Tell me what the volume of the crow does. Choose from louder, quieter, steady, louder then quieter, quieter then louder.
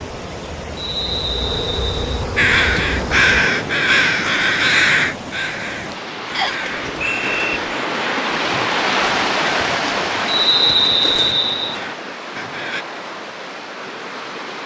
quieter.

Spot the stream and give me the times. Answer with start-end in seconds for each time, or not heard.
0.0-14.6.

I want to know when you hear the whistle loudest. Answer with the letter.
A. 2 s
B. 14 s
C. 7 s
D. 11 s
D.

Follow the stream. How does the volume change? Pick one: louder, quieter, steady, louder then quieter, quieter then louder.
louder then quieter.